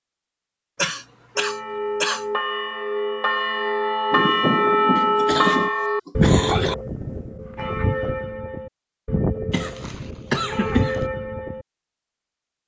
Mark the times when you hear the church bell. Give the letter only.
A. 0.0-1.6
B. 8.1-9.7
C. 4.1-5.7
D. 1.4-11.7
D.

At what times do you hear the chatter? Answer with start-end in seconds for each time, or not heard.
not heard.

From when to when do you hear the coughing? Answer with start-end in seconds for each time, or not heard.
0.8-2.2, 5.0-6.8, 9.5-11.1.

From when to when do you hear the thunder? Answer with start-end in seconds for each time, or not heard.
4.1-5.7.